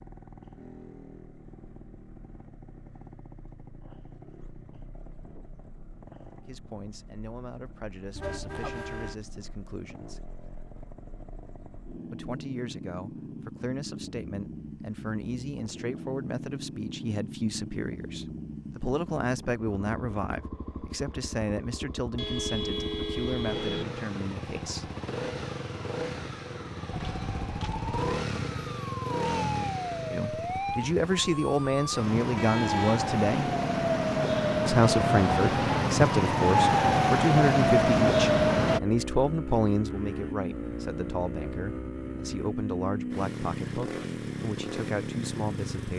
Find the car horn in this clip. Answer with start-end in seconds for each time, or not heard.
8.2-9.2, 22.1-23.9, 32.4-33.0.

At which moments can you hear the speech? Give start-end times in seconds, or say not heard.
6.5-10.2, 12.1-24.9, 30.1-33.5, 34.6-45.9.